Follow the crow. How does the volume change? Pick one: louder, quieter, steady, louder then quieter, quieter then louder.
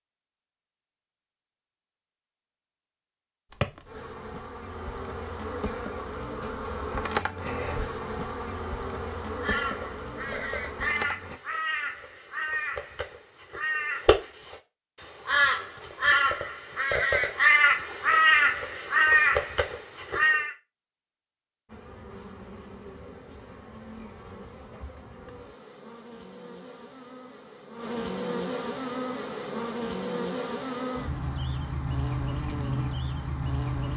louder.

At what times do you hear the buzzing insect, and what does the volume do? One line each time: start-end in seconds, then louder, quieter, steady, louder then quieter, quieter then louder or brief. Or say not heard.
3.5-11.4 louder then quieter
21.6-33.9 louder.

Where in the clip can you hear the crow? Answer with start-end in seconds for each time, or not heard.
9.4-20.5.